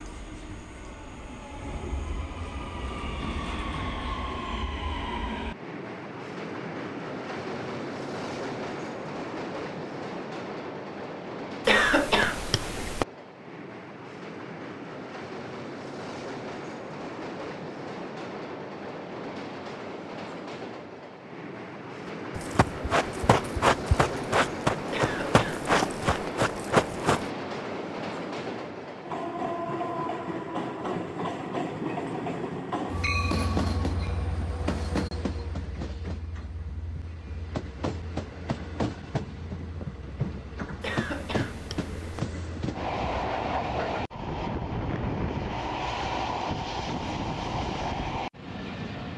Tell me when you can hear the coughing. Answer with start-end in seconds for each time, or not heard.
11.7-13.1, 24.9-26.3, 40.8-42.2.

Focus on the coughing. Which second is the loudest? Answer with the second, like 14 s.
12 s.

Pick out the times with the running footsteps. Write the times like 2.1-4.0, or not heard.
22.4-27.2.